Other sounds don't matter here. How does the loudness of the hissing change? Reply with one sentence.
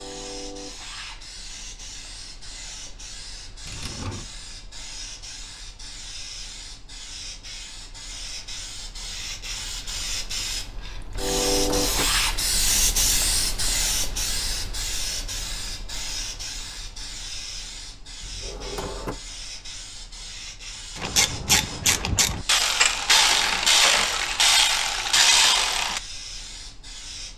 The volume of the hissing goes up, then down.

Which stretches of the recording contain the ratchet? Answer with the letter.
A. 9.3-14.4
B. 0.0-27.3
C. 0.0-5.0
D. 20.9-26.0
D.